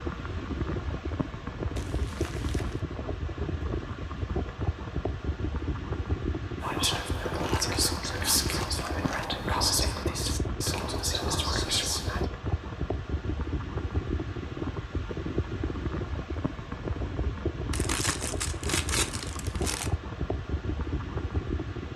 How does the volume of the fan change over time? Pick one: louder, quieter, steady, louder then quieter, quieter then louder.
steady.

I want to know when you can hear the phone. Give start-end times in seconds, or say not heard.
not heard.